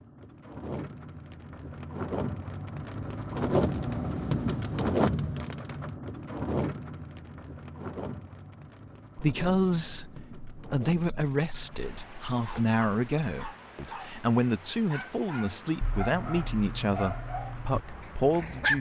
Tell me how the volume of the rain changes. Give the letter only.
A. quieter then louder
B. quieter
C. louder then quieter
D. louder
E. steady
B.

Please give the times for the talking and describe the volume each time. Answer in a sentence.
You can hear the talking from 9.2 to 18.7 s, at a steady volume.